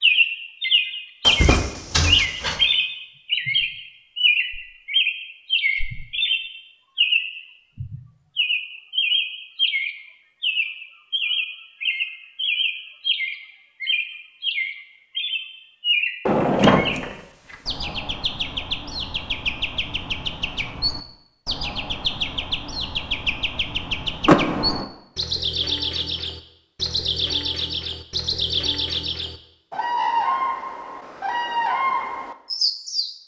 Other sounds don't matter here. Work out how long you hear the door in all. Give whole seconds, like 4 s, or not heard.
4 s.